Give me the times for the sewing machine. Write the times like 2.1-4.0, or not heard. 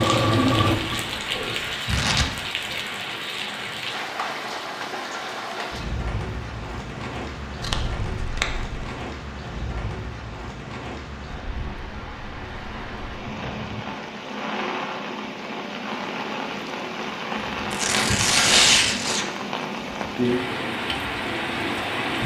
0.0-1.8.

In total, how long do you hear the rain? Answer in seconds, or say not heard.
22 s.